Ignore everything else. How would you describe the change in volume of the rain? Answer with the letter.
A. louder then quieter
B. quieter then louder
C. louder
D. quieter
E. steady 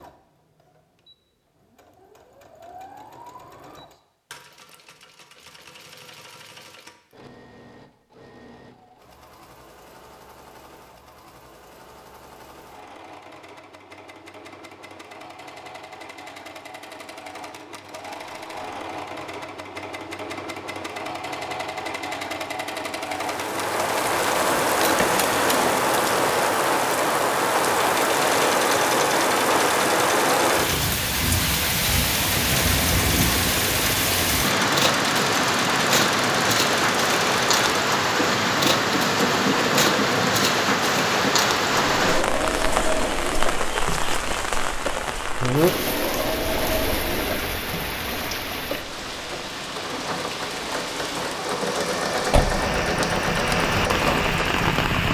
D.